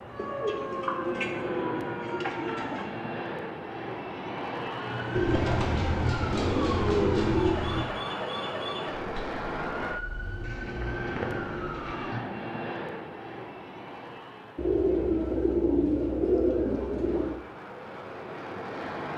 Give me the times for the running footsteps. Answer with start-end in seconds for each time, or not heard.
not heard.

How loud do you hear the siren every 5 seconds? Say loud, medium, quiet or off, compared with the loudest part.
loud, loud, loud, off.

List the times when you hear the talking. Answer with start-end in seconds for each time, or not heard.
not heard.